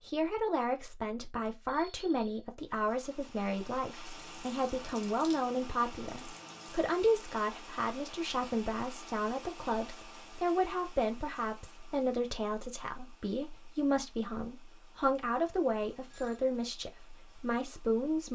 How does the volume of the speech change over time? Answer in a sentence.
The loudness of the speech stays about the same.